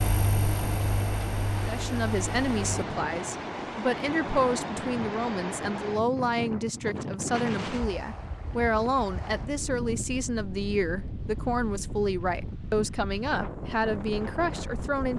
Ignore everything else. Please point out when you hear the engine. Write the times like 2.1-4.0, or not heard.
0.0-2.8.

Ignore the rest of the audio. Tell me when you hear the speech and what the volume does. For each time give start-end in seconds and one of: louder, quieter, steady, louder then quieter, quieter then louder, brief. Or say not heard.
1.6-15.1 steady.